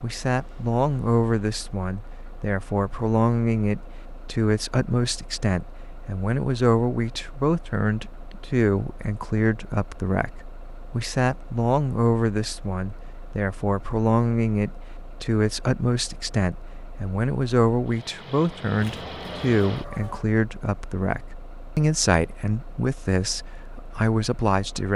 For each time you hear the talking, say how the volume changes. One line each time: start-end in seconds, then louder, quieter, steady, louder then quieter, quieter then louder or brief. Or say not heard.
0.0-24.9 steady.